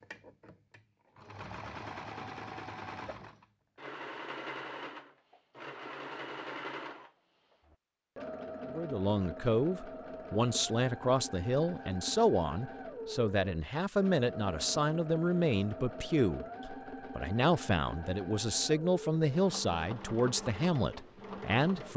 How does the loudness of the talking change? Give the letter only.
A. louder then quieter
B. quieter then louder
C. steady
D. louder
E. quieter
C.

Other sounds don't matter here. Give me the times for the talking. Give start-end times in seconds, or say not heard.
8.7-21.9.